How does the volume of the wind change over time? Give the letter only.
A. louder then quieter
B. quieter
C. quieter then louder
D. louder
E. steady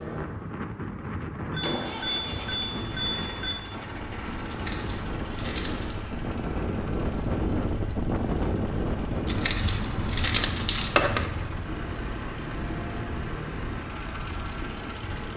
A.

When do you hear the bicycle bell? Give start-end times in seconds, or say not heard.
1.6-3.5.